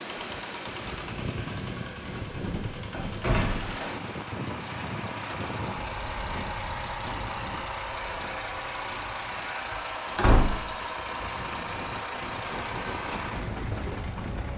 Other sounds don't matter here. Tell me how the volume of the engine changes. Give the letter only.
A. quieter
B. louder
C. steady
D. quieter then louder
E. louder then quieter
B.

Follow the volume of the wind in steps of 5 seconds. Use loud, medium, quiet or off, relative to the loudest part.
loud, medium, loud.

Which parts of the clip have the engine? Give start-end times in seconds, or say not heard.
0.0-14.5.